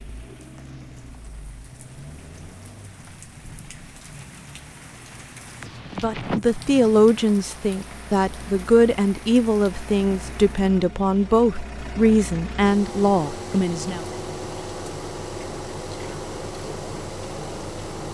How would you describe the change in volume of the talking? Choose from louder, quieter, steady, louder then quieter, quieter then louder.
steady.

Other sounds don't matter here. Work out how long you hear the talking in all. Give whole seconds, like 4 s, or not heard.
8 s.